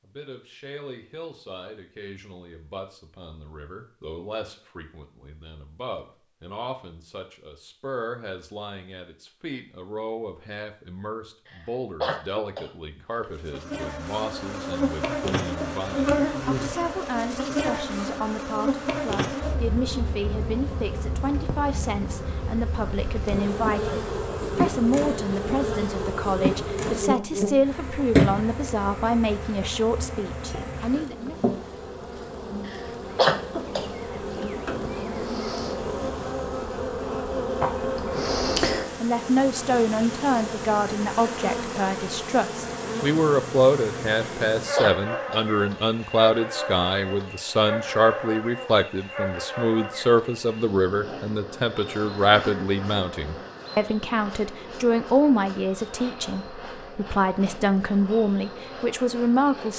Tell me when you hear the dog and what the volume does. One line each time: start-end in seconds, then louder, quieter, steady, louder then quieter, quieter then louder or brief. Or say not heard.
not heard.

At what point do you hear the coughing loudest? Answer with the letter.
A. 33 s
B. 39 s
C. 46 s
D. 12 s
A.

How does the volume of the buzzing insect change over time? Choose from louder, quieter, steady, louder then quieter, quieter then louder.
quieter.